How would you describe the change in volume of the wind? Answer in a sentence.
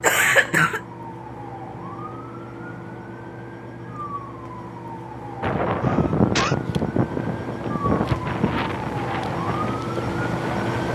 The volume of the wind goes down.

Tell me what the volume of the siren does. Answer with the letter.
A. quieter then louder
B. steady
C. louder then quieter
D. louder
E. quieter
D.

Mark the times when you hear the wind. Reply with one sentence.
You can hear the wind from 5.4 to 10.9 s.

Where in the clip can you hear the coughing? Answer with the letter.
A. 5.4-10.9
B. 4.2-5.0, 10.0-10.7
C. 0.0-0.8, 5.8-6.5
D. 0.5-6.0
C.